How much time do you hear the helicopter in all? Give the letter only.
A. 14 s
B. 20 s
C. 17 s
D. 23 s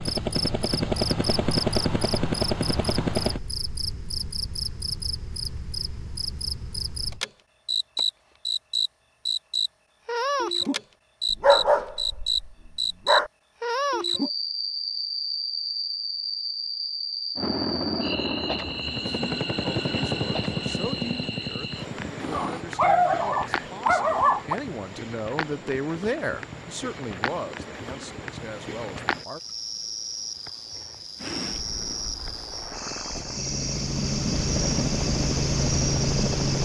A.